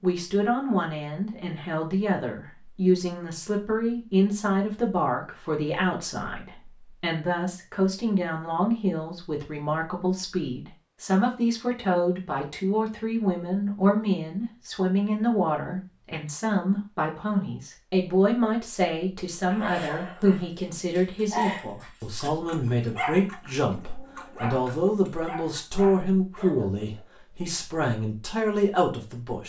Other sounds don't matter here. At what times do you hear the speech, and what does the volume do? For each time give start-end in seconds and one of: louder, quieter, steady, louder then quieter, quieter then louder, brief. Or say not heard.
0.0-29.4 steady.